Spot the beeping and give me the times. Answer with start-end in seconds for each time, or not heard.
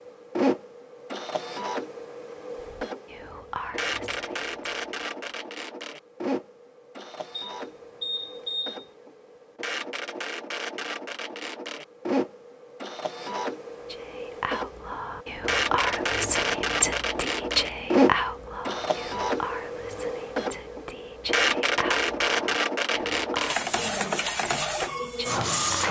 7.3-8.8.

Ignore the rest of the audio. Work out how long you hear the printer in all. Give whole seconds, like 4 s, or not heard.
26 s.